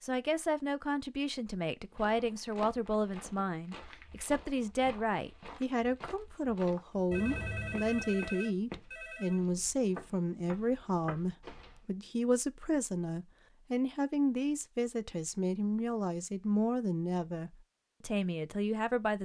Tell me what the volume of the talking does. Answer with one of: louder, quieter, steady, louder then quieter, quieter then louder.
steady.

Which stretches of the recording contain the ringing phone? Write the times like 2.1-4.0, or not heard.
7.1-9.4.